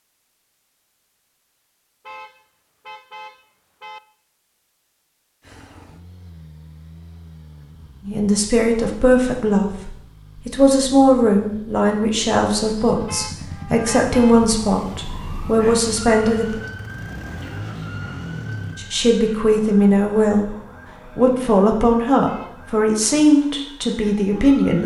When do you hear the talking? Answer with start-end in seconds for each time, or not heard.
8.1-16.6, 18.8-20.5, 21.1-24.8.